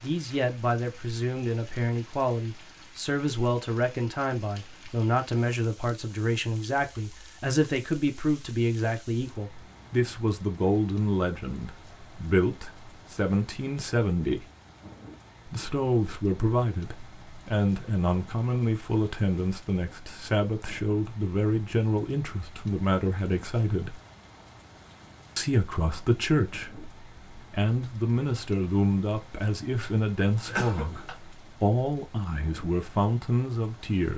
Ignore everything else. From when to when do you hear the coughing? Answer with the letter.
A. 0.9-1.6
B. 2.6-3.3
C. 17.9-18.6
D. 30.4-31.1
D.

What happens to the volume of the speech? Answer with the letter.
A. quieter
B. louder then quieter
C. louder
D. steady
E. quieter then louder
D.